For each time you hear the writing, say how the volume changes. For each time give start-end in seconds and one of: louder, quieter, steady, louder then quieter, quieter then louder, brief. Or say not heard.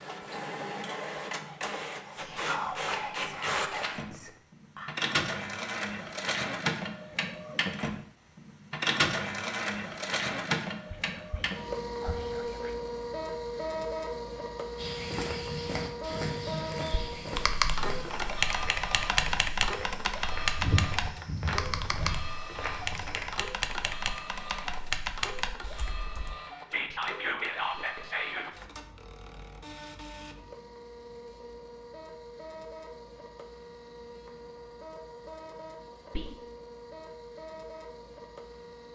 not heard.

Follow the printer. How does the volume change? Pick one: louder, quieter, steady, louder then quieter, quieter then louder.
quieter.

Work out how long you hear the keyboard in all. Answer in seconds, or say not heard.
9 s.